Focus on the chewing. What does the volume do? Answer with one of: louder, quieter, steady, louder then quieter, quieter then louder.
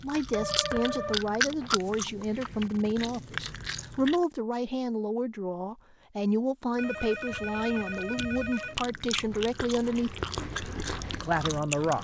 quieter then louder.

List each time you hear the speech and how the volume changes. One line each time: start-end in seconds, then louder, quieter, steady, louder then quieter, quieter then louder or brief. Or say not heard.
0.0-10.2 steady
11.2-11.9 brief.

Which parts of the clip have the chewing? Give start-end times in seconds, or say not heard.
0.0-4.2, 6.7-11.9.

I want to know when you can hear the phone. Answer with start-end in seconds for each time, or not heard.
0.3-1.3, 6.8-8.9.